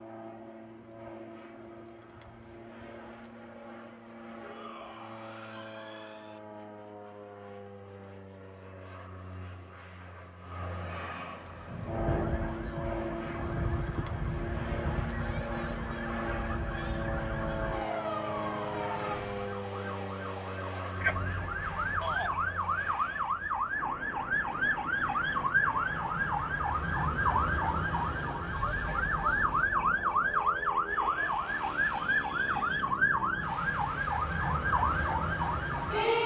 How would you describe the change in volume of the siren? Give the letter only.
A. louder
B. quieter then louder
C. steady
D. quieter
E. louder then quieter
A.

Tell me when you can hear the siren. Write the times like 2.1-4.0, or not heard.
11.4-36.2.